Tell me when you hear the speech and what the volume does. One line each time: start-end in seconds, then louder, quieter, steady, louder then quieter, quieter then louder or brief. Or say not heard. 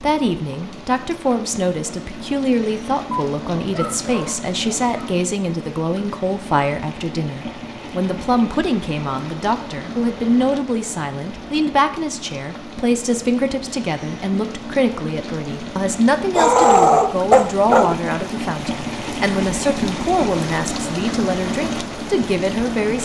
0.0-23.0 steady.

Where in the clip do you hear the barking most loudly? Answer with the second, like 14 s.
17 s.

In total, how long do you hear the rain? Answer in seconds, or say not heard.
23 s.